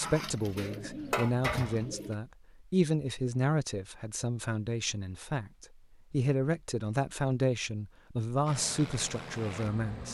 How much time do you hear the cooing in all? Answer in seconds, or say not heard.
2 s.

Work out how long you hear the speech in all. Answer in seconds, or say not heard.
10 s.